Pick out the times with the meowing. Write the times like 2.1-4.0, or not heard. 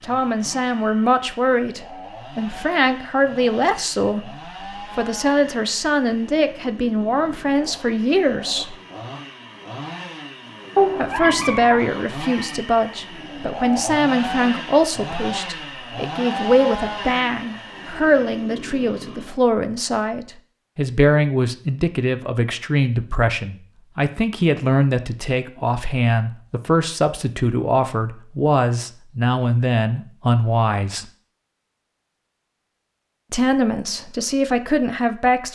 10.8-11.8.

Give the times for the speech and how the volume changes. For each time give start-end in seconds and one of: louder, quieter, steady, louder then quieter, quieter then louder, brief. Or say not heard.
0.0-8.8 steady
10.9-31.1 steady
33.3-35.4 brief.